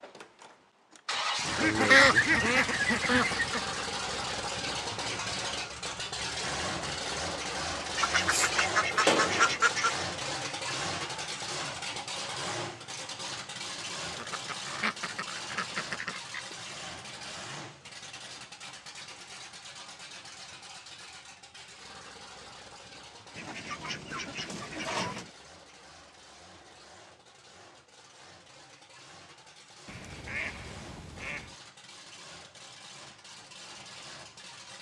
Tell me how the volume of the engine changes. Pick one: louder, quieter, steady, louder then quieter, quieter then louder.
quieter.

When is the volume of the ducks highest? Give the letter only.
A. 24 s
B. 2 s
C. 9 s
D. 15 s
B.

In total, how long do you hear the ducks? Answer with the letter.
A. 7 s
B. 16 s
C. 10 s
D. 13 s
C.